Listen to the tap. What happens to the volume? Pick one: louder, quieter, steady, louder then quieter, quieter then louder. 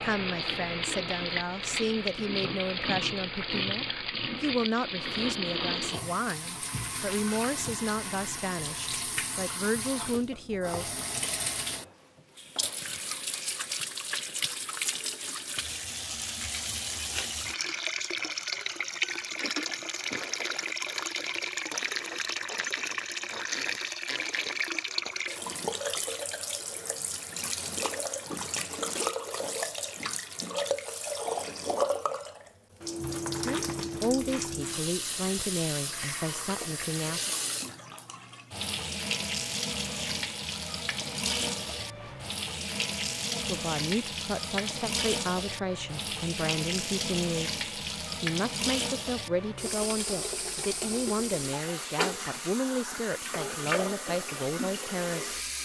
steady.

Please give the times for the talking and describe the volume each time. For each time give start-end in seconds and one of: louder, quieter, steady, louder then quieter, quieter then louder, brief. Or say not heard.
0.0-10.9 steady
33.3-37.3 quieter
43.3-55.4 steady.